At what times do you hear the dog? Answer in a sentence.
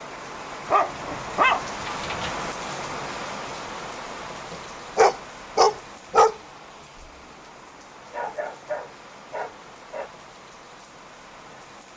The dog can be heard from 0.7 to 2.3 s, from 4.5 to 6.3 s and from 8.1 to 10.1 s.